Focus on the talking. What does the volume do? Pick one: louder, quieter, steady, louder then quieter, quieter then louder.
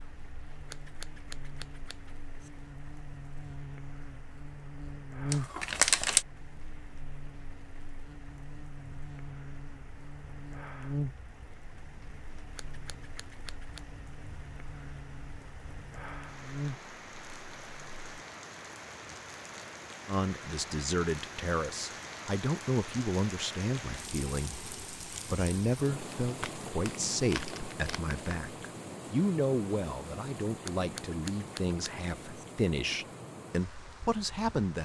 steady.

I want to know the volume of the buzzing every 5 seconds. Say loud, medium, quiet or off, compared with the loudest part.
medium, loud, loud, loud, off, off, off.